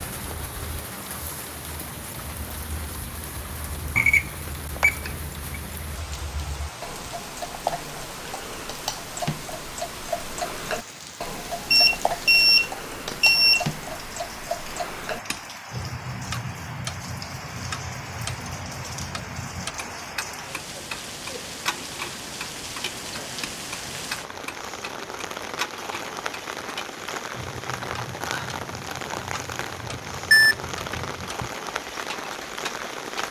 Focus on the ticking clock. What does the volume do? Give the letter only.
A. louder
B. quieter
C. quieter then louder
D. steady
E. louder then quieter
E.